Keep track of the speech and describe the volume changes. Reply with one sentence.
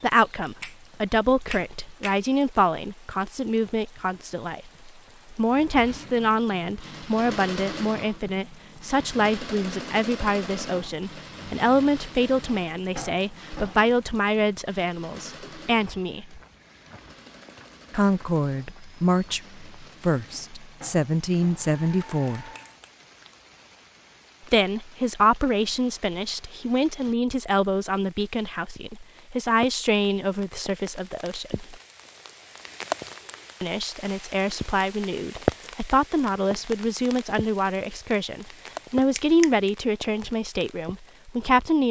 The loudness of the speech stays about the same.